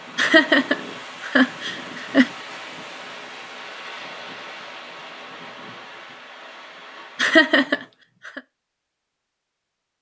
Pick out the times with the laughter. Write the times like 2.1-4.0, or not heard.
0.1-2.3, 7.2-8.4.